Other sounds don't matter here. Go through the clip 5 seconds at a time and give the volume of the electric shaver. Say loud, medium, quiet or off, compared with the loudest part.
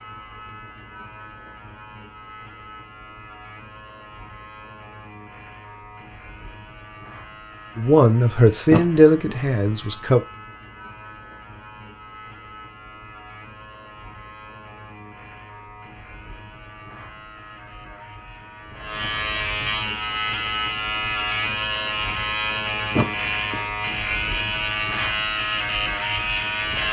quiet, quiet, quiet, medium, loud, loud.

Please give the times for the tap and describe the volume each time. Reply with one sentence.
You can't hear the tap here.